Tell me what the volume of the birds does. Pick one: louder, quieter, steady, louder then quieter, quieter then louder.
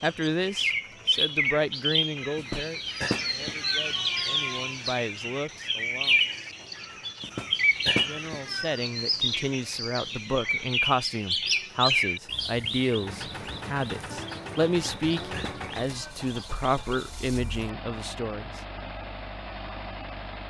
quieter.